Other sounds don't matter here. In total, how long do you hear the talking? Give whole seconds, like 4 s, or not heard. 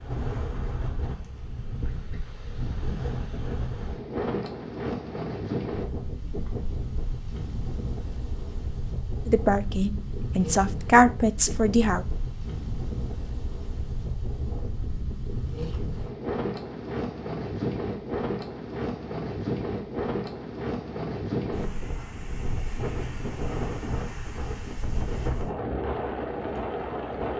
3 s.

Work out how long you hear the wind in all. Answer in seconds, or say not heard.
27 s.